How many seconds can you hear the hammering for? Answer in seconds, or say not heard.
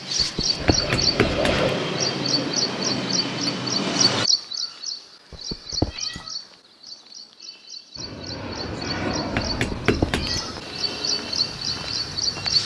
2 s.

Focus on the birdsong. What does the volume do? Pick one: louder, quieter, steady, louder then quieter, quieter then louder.
quieter then louder.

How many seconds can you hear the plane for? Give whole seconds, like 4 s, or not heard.
9 s.